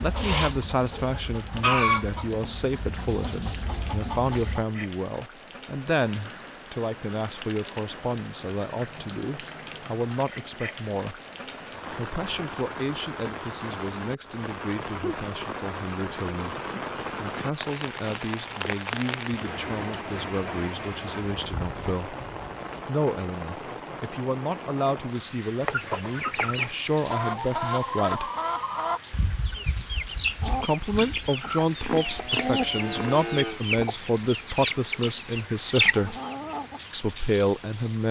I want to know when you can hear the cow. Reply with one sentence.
You can hear the cow from 31.9 to 33.6 s.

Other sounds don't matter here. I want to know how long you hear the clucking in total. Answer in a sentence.
You can hear the clucking for 16 seconds altogether.